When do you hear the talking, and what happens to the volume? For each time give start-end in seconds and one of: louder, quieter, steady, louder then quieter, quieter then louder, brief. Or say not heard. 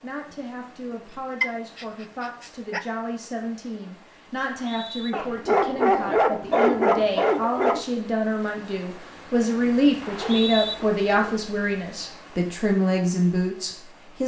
0.0-14.2 louder.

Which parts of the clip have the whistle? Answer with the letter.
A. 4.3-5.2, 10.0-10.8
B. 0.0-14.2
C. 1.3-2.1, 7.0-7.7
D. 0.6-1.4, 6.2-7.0
A.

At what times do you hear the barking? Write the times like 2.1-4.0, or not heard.
1.4-2.9, 5.1-7.8, 9.6-11.4.